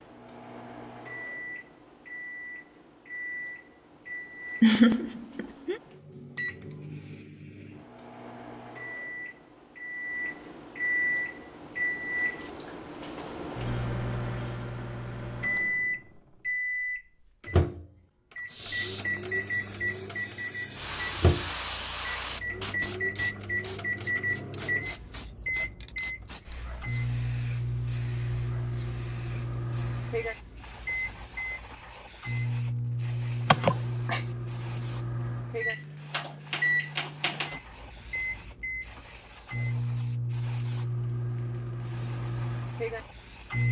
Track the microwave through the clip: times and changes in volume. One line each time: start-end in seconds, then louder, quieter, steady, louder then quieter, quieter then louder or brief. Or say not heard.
0.0-43.6 louder.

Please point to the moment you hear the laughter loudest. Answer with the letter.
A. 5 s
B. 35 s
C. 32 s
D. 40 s
A.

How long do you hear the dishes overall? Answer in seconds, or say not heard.
not heard.